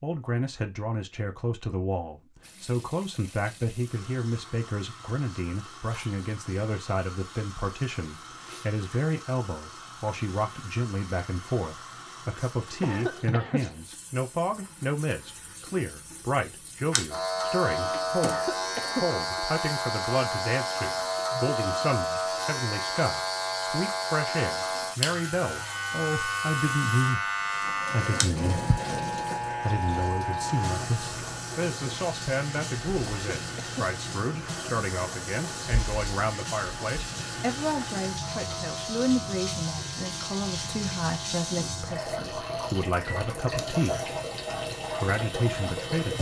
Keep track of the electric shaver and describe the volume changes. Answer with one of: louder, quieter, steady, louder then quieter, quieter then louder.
quieter.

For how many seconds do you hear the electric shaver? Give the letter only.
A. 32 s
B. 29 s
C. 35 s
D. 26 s
B.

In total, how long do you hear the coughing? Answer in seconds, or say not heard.
3 s.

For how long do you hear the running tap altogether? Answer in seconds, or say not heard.
44 s.